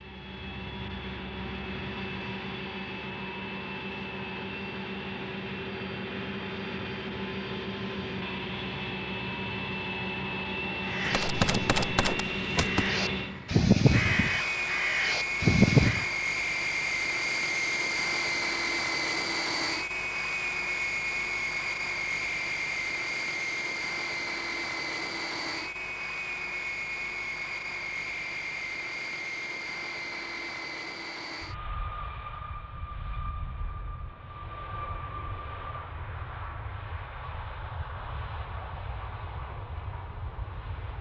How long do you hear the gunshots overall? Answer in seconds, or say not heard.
2 s.